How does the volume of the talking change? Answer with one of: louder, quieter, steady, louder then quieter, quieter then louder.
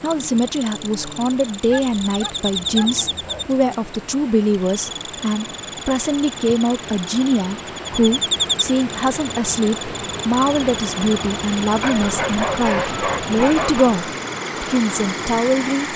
steady.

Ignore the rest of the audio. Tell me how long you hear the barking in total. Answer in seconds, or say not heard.
4 s.